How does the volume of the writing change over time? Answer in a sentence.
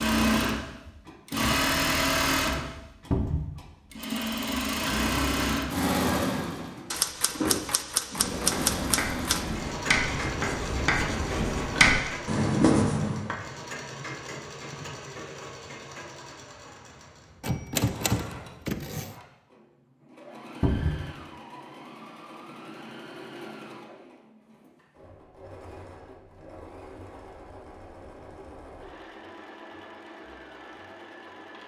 The volume of the writing goes up.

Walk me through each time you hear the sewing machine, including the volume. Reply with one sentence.
The sewing machine can be heard from 0.0 to 31.6 s, getting quieter.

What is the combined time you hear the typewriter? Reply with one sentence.
The typewriter can be heard for 4 seconds in total.